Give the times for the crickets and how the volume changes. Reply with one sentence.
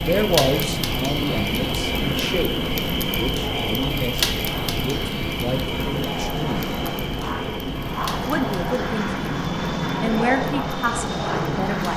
The crickets can be heard from 0.0 to 11.9 s, getting quieter.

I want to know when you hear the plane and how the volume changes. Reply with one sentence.
The plane can be heard from 0.0 to 11.9 s, getting louder.